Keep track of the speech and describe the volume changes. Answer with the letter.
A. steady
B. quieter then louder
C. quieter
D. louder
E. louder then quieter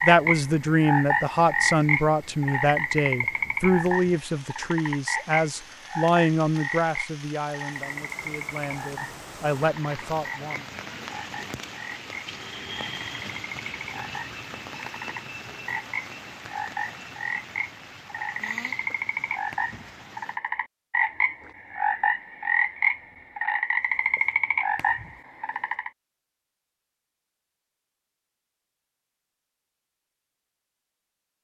C.